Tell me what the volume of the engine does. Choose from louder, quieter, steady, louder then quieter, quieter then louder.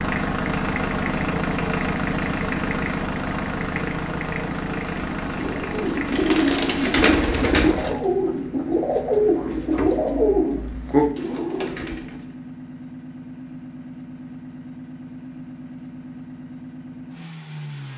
quieter.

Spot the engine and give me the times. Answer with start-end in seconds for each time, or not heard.
0.0-17.9.